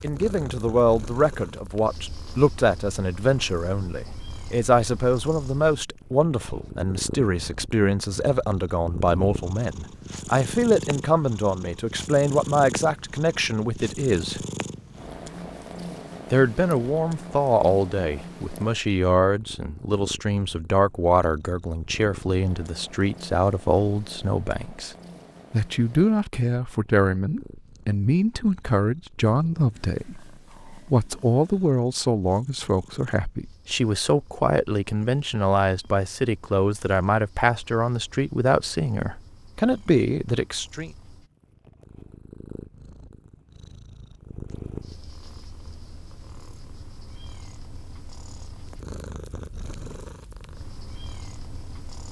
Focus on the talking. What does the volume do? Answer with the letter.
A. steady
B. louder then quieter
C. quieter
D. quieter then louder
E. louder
A.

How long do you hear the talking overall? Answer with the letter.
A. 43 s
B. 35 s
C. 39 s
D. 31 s
C.